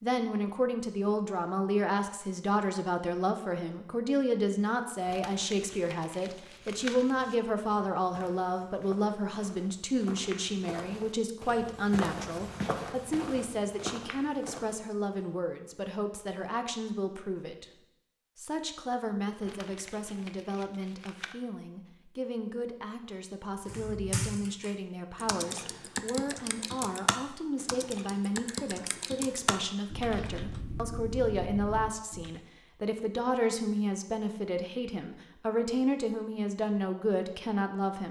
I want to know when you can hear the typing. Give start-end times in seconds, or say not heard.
23.6-32.4.